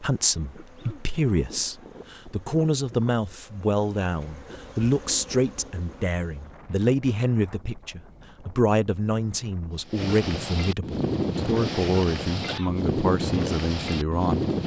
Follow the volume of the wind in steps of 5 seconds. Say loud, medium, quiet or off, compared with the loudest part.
quiet, quiet, loud.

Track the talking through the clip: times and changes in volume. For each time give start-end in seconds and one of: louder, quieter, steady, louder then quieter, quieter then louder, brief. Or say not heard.
0.0-14.4 steady.